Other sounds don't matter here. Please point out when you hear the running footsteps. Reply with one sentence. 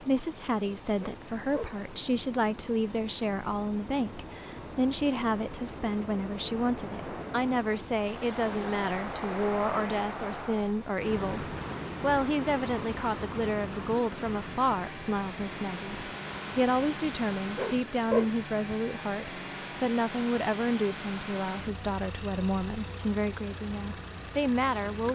You can't hear the running footsteps here.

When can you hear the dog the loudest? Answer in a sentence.
The loudest moment of the dog is at 18 seconds.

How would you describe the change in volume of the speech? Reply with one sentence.
The volume of the speech stays about the same.